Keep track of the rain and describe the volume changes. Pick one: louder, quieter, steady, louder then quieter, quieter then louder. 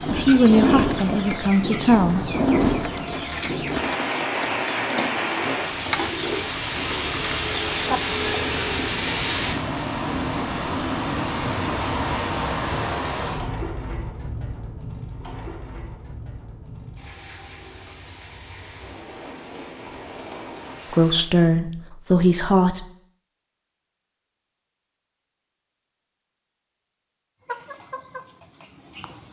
quieter.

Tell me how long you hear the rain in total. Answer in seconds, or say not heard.
21 s.